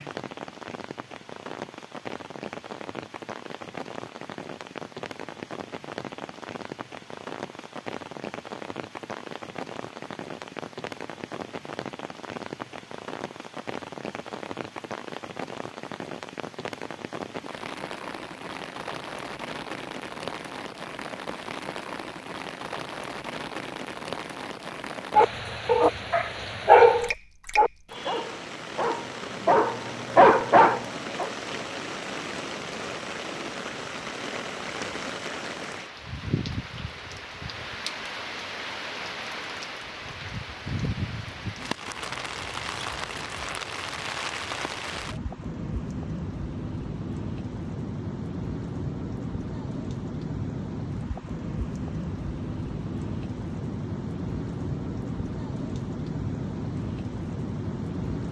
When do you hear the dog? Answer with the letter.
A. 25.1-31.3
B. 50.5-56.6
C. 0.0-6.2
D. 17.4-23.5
A.